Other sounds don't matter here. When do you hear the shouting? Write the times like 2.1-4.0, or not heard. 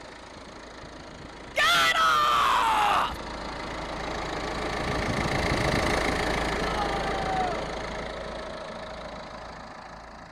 1.6-3.2, 6.6-7.6.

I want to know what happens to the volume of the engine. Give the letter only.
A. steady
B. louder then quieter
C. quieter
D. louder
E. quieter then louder
B.